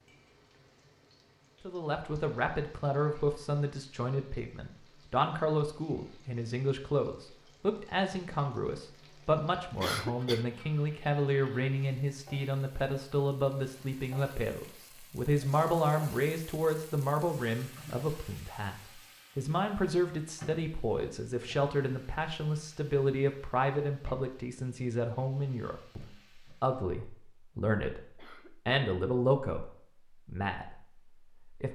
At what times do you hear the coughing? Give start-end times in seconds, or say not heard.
9.8-10.4, 28.1-28.8.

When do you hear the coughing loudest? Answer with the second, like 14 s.
10 s.